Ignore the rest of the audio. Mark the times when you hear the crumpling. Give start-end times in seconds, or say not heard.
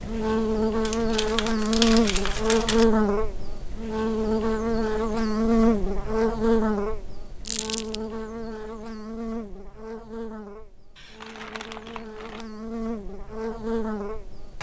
0.8-2.9, 7.5-8.0, 10.9-12.4.